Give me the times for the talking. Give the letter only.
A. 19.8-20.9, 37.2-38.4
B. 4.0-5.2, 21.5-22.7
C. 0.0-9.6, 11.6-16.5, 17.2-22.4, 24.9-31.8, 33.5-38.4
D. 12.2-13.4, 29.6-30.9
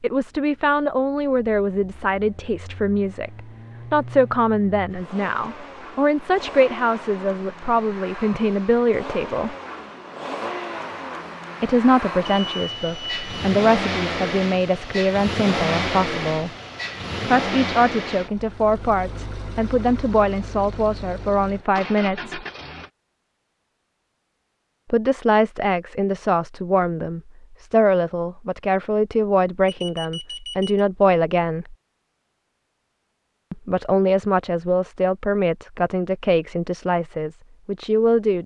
C.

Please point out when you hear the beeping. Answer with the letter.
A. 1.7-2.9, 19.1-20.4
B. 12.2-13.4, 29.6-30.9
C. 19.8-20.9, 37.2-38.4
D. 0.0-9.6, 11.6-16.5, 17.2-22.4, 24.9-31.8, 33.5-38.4
B.